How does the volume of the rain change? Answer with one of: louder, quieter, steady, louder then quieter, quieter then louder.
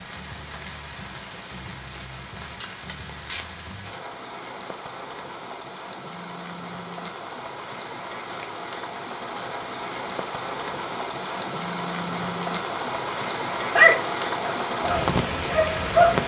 louder.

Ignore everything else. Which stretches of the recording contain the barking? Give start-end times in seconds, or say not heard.
13.7-16.2.